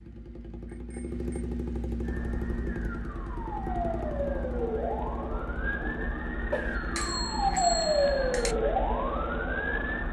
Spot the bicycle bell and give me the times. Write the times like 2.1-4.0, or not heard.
0.7-1.4, 6.5-8.6.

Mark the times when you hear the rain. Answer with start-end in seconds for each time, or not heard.
not heard.